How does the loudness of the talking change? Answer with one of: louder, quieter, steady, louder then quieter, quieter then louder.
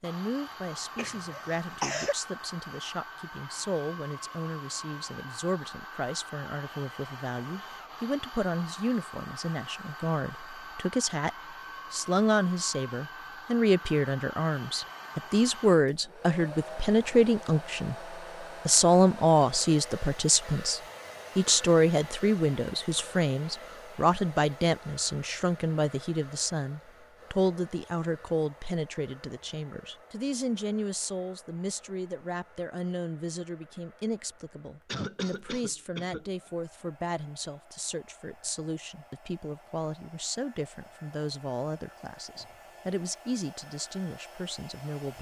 louder then quieter.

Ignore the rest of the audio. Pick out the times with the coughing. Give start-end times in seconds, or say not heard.
0.9-2.1, 34.9-36.3.